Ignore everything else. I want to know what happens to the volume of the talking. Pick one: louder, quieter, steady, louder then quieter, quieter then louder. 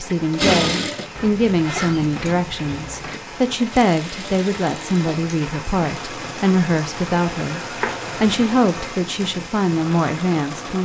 steady.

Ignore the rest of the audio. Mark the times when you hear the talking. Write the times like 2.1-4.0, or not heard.
0.0-10.8.